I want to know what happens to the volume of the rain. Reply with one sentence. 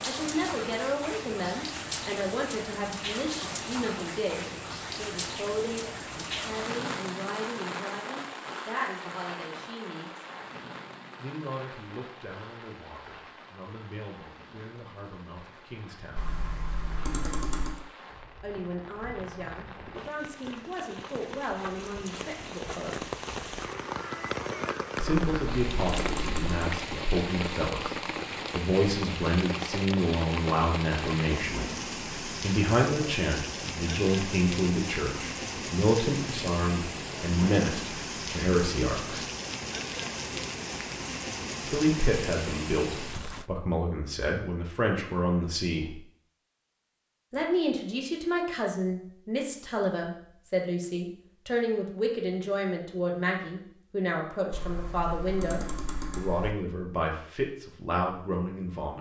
The volume of the rain goes down, then up.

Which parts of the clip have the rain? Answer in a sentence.
The rain can be heard from 0.0 to 43.5 s.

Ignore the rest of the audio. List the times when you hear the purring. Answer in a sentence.
You can't hear the purring here.